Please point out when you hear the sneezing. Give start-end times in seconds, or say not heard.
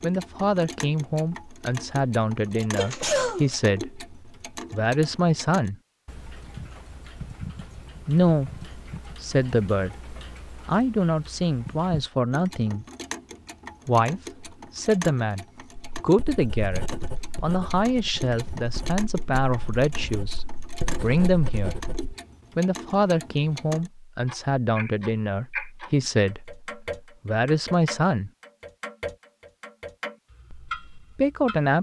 2.8-3.6.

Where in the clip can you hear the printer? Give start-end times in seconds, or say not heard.
not heard.